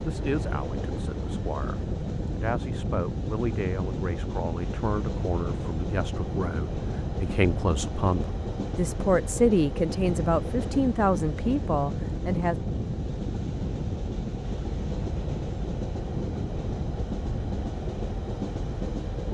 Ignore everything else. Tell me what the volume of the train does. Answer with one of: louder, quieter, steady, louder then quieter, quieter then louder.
steady.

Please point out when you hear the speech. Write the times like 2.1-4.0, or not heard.
0.0-12.6.